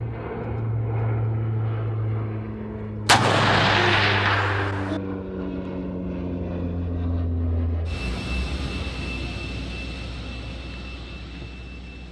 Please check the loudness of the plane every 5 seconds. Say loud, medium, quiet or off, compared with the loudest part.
loud, loud, medium.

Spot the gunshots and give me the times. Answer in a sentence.
The gunshots can be heard from 3.0 to 5.0 s.